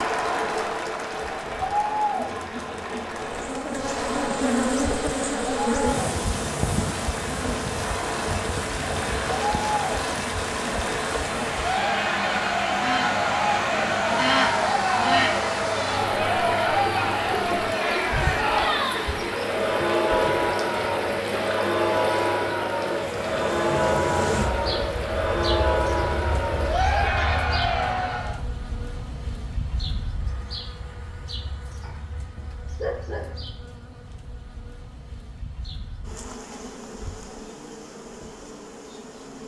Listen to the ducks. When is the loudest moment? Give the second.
14 s.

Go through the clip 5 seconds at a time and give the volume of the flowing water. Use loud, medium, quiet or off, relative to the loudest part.
medium, loud, loud, loud, loud, medium, off, off.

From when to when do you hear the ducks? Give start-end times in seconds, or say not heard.
12.8-15.3.